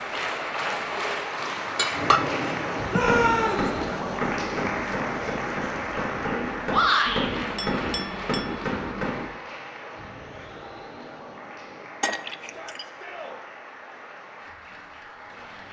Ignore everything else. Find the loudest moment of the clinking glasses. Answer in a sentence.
The loudest moment of the clinking glasses is at 2 seconds.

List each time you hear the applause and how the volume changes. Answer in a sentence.
You can hear the applause from 0.0 to 15.6 s, getting quieter.